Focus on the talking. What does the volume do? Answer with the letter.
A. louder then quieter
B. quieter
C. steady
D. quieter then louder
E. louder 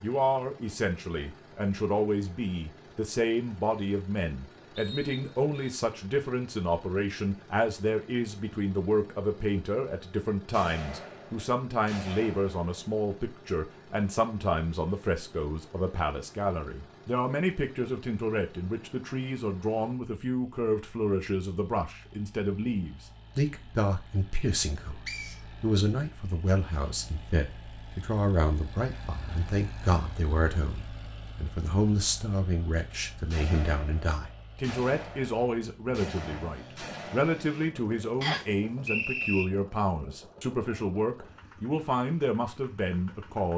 C.